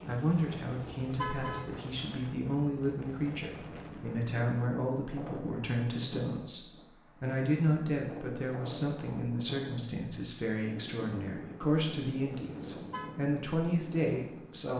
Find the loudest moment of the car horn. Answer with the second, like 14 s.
1 s.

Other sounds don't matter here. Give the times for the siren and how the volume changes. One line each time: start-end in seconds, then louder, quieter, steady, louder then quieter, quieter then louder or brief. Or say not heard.
not heard.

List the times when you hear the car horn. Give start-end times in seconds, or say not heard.
0.7-1.7, 12.4-13.2.